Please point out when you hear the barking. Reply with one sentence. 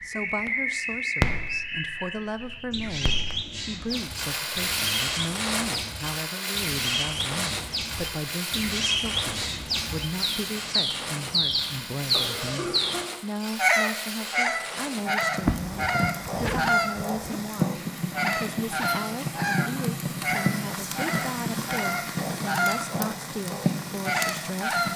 The barking can't be heard in this clip.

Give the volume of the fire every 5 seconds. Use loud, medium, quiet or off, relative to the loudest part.
loud, loud, medium, loud, loud.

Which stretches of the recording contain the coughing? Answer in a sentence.
You can hear the coughing from 12.1 to 13.1 s.